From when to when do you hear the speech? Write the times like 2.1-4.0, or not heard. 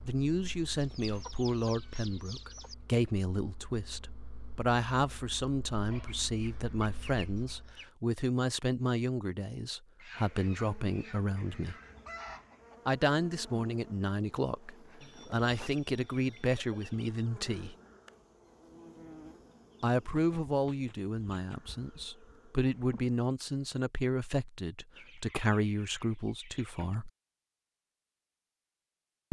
0.1-11.8, 12.8-17.8, 19.8-27.1.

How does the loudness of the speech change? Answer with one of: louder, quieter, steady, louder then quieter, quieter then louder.
steady.